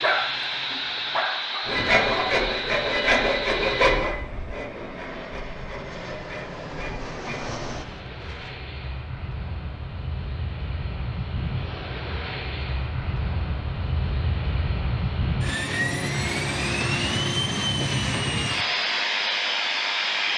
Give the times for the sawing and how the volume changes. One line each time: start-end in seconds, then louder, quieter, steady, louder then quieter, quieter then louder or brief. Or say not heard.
1.6-8.6 quieter.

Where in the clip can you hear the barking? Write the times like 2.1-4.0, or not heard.
0.0-2.4.